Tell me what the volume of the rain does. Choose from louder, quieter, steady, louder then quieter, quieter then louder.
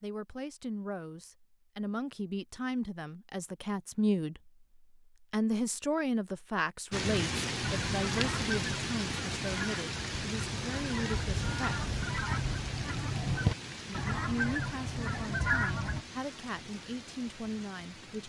quieter.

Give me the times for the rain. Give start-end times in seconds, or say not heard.
6.9-18.2.